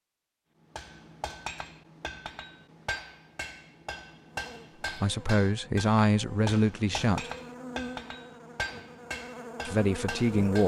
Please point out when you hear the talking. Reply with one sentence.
The talking can be heard from 4.8 to 7.3 s and from 9.7 to 10.6 s.